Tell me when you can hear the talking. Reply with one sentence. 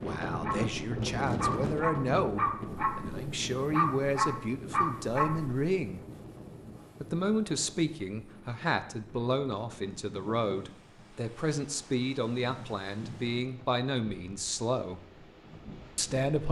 You can hear the talking from 0.0 to 6.0 s, from 7.0 to 15.0 s and from 15.9 to 16.4 s.